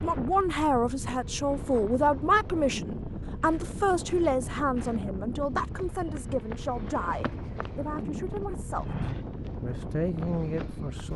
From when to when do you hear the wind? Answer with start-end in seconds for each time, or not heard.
0.0-11.1.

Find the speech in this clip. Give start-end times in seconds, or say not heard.
0.0-11.1.